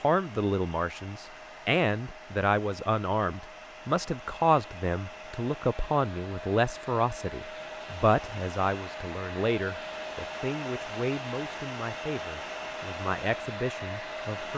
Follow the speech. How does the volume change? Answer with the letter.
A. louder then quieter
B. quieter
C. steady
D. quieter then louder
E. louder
B.